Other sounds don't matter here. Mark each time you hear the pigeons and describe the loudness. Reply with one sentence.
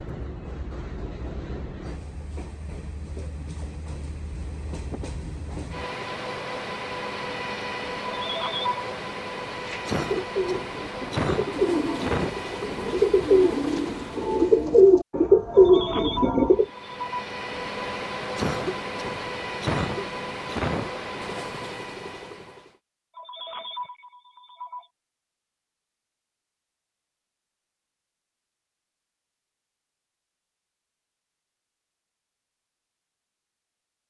You can hear the pigeons from 9.6 to 16.6 s, getting louder.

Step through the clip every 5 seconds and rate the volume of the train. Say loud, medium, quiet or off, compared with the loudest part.
medium, loud, loud, loud, loud, off, off.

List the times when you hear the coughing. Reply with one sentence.
The coughing can be heard from 9.8 to 12.4 s and from 18.4 to 20.9 s.